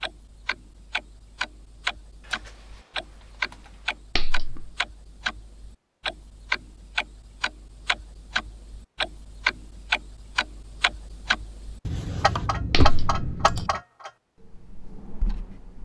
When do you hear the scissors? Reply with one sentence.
The scissors can be heard from 4.2 to 4.7 s and from 12.7 to 13.7 s.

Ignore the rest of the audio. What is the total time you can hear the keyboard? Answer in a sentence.
The keyboard can be heard for 4 seconds in total.